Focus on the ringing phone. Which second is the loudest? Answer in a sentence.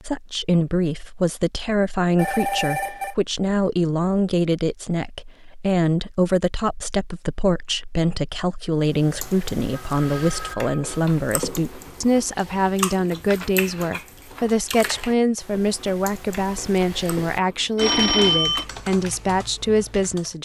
The volume of the ringing phone peaks at 18 seconds.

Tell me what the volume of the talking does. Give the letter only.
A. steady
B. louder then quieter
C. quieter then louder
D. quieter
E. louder
A.